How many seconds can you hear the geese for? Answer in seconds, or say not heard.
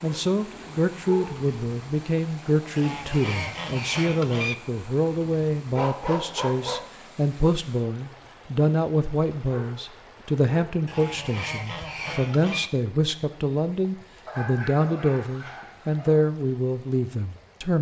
4 s.